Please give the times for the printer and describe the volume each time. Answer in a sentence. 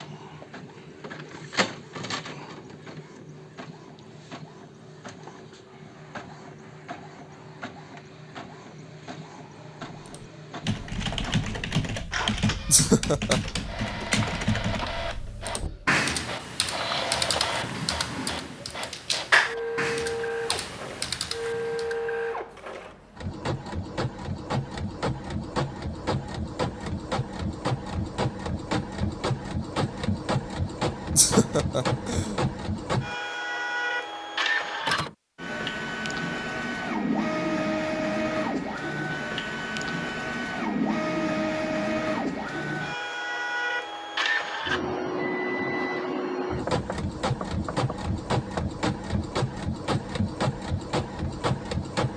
You can hear the printer from 0.0 to 52.1 s, getting louder.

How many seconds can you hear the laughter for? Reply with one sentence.
You can hear the laughter for 2 seconds altogether.